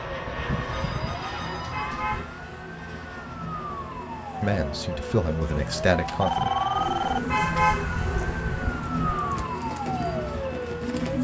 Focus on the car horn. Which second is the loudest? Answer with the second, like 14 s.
8 s.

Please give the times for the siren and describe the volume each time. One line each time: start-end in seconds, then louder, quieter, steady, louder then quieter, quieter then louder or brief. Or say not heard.
0.0-11.1 louder.